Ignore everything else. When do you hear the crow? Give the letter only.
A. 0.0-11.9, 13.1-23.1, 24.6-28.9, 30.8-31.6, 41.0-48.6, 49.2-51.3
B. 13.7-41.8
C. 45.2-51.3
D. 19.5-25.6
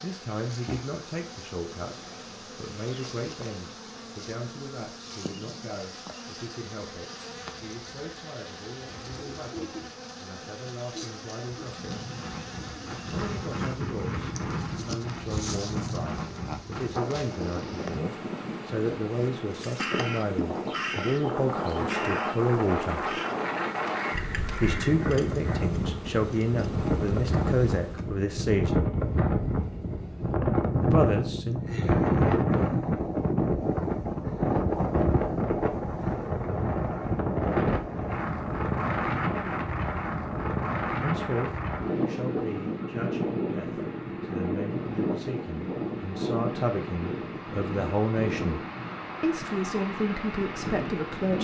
D.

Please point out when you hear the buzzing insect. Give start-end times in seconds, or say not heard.
0.0-28.1.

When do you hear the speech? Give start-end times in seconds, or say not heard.
0.0-11.9, 13.1-23.1, 24.6-28.9, 30.8-31.6, 41.0-48.6, 49.2-51.3.